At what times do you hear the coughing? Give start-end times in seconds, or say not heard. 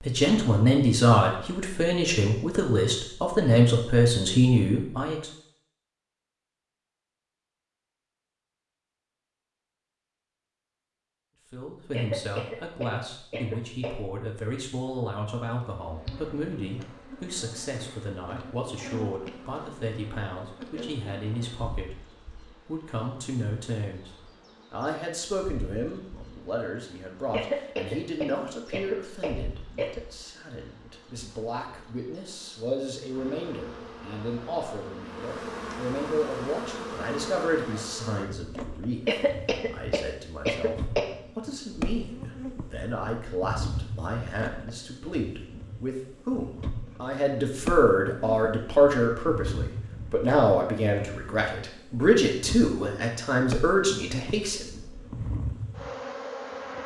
11.9-14.0, 27.3-30.0, 39.0-41.1.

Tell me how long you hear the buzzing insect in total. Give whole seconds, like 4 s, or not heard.
41 s.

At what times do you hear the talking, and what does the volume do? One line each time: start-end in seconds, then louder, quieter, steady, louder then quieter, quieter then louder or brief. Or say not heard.
0.0-5.3 quieter then louder
11.5-54.7 louder.